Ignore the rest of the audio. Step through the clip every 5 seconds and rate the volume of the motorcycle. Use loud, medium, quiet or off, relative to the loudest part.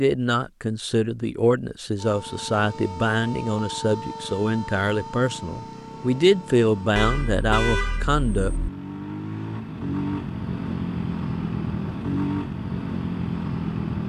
quiet, medium, loud.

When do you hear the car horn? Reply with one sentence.
The car horn can be heard from 7.0 to 8.7 s.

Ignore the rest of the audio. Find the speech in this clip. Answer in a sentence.
You can hear the speech from 0.0 to 8.5 s.